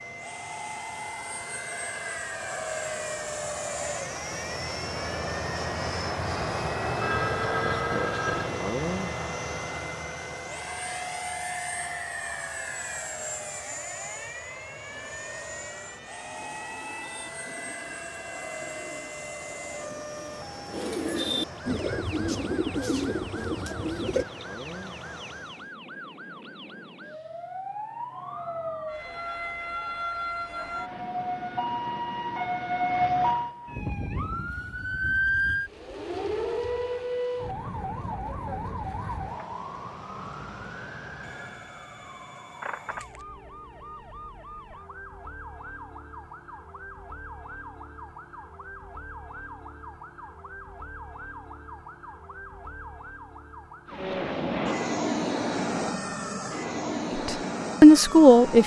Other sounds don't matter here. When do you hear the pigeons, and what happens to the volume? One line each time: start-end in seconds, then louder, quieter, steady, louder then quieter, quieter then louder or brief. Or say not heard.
16.4-24.2 louder.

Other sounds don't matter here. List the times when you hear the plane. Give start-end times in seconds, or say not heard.
0.0-25.8, 53.9-58.6.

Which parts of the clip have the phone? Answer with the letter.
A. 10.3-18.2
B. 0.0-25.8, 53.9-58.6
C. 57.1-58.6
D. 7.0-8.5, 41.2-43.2
D.